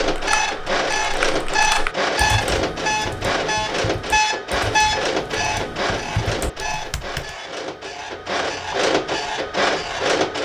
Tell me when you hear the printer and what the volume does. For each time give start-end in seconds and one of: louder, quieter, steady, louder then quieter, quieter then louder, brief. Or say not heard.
0.0-10.4 quieter then louder.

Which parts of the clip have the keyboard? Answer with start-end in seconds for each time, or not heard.
0.0-7.3.